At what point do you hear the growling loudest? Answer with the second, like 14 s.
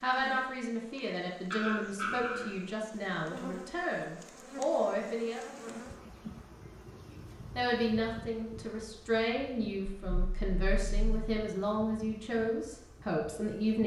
2 s.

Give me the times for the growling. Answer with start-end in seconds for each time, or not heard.
1.5-2.5, 9.9-11.3.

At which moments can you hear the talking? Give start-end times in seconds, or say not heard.
0.0-5.4, 7.1-13.8.